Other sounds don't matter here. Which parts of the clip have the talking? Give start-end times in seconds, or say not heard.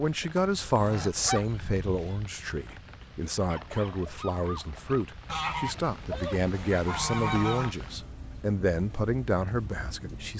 0.0-10.3.